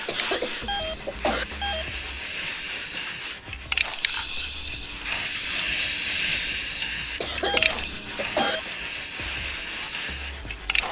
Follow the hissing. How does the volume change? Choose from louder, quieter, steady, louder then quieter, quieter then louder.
louder then quieter.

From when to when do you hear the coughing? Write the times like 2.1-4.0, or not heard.
0.1-1.4, 7.2-8.6.